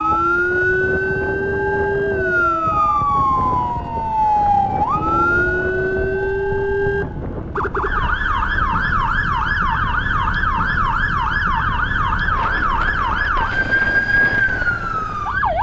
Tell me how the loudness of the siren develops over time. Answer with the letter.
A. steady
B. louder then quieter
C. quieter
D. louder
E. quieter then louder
A.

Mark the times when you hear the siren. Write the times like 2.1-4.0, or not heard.
0.0-15.5.